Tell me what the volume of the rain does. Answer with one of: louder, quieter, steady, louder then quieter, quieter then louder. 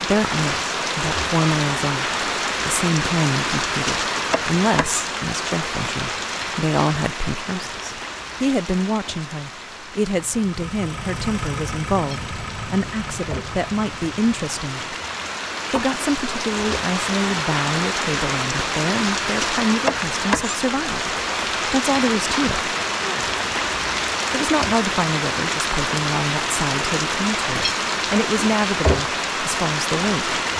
quieter then louder.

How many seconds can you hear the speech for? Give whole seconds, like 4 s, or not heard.
28 s.